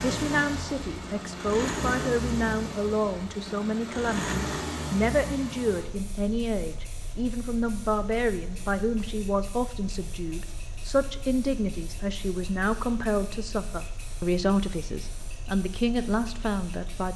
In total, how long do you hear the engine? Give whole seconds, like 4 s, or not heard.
17 s.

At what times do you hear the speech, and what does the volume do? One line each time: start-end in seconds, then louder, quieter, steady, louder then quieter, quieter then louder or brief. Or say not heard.
0.0-17.1 steady.